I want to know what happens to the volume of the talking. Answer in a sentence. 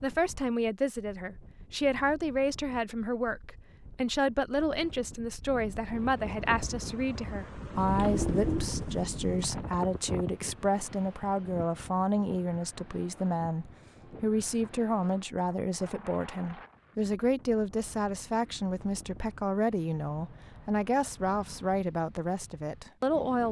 The volume of the talking stays about the same.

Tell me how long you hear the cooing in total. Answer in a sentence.
The cooing can be heard for 2 seconds in total.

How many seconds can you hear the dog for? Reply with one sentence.
The dog can't be heard in this clip.